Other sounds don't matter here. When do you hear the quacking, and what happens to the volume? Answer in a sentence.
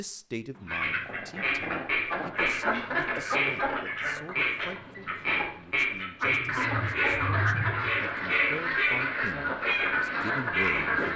You can hear the quacking from 0.7 to 11.1 s, at a steady volume.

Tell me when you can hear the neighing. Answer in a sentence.
You can't hear the neighing here.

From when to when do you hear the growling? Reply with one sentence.
The growling can be heard from 0.6 to 2.4 s and from 6.4 to 8.1 s.